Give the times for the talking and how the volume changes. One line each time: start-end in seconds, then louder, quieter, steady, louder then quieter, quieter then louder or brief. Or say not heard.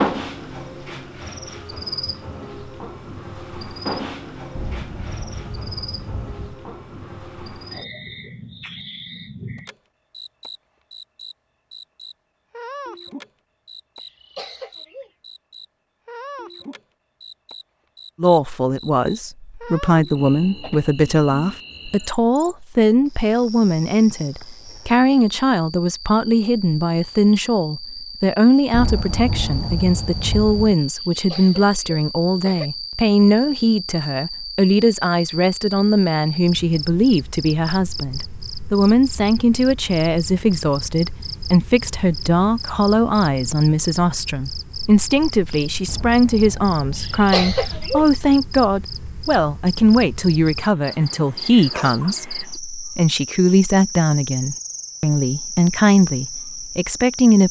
18.2-57.4 steady.